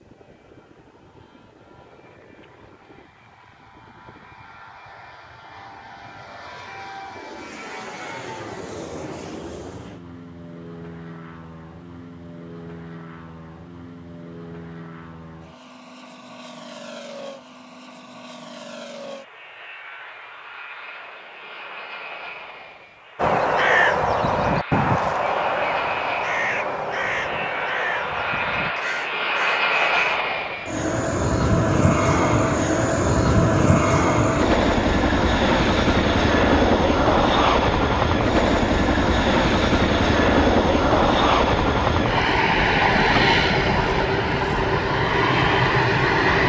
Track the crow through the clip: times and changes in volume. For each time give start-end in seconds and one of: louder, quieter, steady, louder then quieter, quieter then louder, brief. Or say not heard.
23.1-30.2 quieter.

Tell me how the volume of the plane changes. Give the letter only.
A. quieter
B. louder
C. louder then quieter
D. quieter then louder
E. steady
B.